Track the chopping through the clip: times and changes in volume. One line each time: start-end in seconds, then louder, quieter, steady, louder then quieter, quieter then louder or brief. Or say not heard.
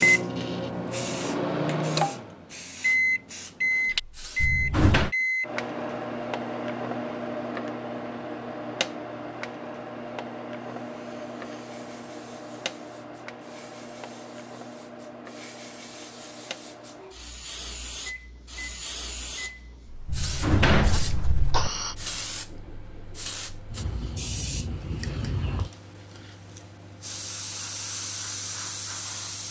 not heard.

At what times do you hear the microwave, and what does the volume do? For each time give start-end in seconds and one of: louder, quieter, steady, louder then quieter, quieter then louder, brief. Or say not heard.
0.0-29.4 quieter.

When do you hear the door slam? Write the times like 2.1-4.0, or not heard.
4.4-5.1, 20.1-21.7.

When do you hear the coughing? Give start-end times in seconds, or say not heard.
21.1-21.9.